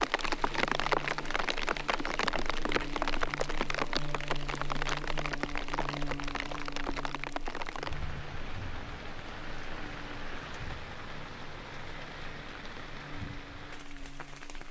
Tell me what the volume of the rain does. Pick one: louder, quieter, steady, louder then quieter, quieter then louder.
quieter.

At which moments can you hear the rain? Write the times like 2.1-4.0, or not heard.
0.0-14.6.